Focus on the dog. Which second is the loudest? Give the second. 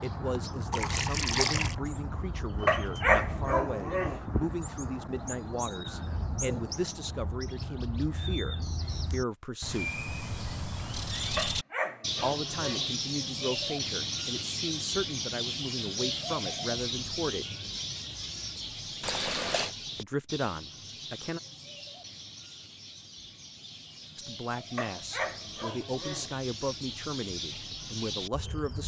3 s.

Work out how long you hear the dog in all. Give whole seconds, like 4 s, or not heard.
5 s.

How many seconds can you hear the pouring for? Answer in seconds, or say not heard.
2 s.